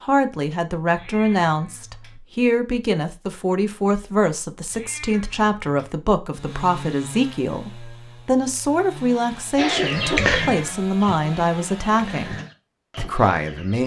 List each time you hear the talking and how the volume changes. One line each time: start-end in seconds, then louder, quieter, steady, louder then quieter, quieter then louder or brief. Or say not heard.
0.0-12.3 steady
12.9-13.8 brief.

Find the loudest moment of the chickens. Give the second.
10 s.